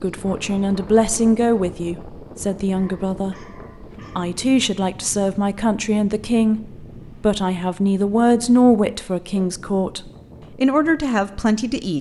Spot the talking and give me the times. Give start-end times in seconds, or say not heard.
0.0-3.4, 4.2-11.9.